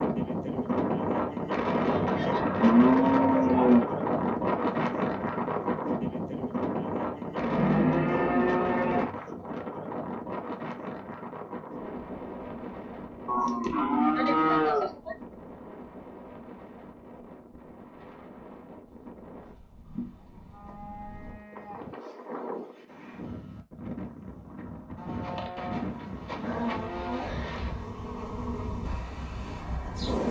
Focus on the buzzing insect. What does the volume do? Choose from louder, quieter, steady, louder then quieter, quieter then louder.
quieter.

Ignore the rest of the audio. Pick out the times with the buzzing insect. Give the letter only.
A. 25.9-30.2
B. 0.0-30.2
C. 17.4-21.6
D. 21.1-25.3
A.